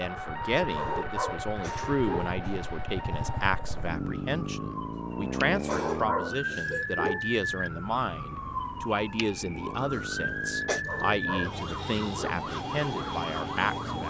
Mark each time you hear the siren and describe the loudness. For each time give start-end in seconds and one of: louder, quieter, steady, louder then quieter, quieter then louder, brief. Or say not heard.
0.0-14.0 quieter then louder.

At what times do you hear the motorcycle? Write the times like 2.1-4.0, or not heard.
0.0-14.0.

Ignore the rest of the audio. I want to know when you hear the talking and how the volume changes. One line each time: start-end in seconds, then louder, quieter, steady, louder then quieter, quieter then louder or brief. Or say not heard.
0.0-14.0 steady.